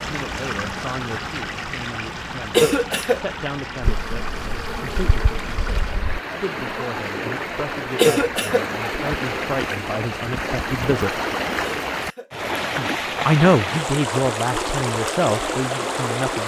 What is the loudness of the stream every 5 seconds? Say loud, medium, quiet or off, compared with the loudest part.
medium, loud, loud, loud.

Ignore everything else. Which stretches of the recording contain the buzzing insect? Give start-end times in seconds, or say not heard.
3.8-6.2.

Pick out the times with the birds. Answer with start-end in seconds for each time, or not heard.
not heard.